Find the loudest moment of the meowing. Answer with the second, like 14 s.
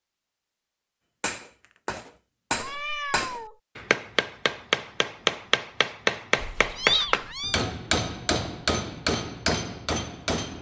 7 s.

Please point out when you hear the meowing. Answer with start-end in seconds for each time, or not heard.
2.5-3.5, 6.3-7.7.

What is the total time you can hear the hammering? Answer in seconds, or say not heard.
9 s.